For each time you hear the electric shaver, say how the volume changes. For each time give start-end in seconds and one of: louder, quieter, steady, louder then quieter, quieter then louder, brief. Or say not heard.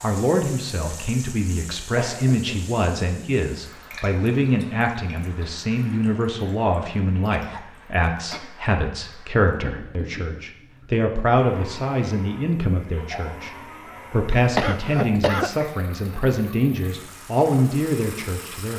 not heard.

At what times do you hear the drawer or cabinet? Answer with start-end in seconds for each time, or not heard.
not heard.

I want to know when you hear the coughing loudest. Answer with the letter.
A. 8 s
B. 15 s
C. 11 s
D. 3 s
B.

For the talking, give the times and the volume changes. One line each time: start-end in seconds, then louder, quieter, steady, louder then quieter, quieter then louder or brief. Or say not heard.
0.0-18.7 steady.